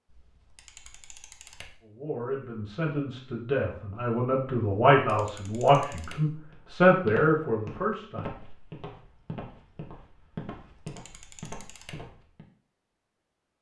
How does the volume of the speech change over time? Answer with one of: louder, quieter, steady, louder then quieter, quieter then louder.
louder.